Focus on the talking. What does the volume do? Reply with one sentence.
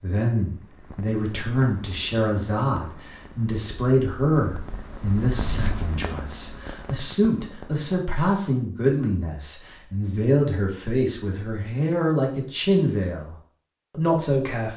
The loudness of the talking stays about the same.